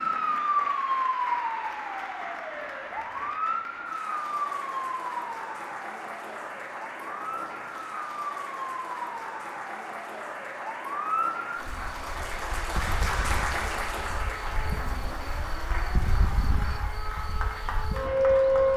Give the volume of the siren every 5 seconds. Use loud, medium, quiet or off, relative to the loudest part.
loud, medium, medium, loud.